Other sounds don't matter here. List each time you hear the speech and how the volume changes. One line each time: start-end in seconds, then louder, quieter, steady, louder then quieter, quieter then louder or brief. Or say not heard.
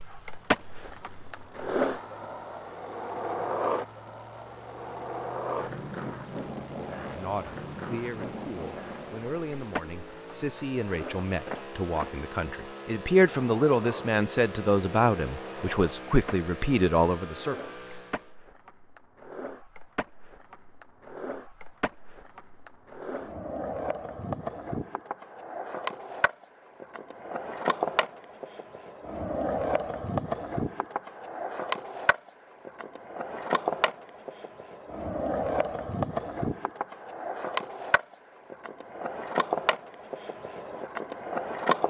7.0-17.6 louder.